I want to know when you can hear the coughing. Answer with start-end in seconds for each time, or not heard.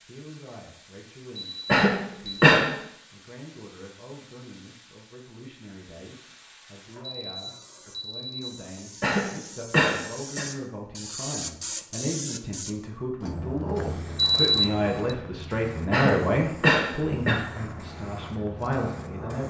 1.6-2.7, 9.0-10.4, 15.9-17.4.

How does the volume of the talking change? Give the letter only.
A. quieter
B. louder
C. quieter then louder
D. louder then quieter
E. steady
B.